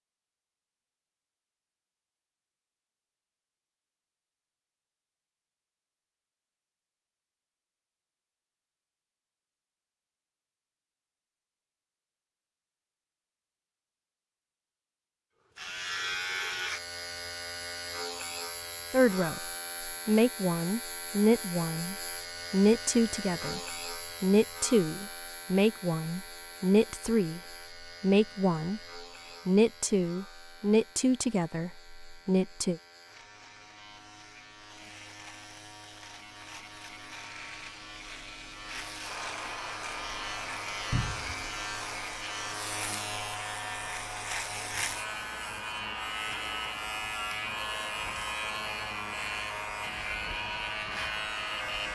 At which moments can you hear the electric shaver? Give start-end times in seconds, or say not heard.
15.6-51.9.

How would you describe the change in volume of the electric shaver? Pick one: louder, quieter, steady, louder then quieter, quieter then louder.
quieter then louder.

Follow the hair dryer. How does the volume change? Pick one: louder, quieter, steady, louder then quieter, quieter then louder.
steady.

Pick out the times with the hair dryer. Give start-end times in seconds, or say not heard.
39.0-51.9.